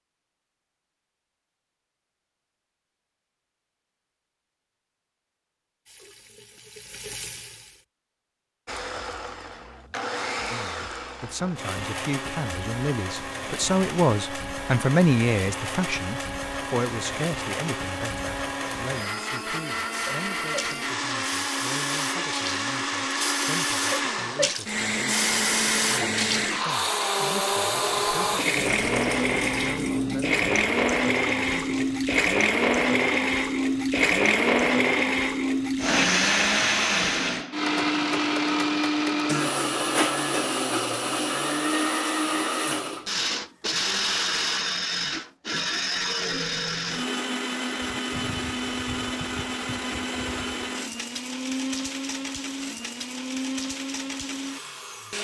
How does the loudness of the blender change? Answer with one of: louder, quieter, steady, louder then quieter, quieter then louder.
louder then quieter.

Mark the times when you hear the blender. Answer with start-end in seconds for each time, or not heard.
8.7-55.1.